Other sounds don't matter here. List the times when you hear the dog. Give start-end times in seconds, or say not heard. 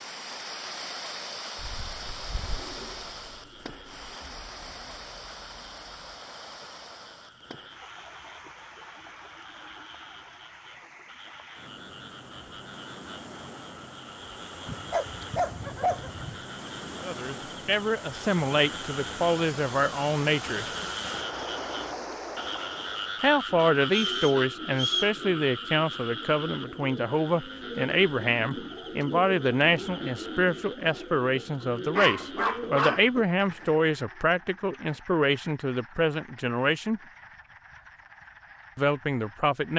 14.7-16.4, 31.9-33.6.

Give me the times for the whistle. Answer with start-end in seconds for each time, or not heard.
23.9-25.1.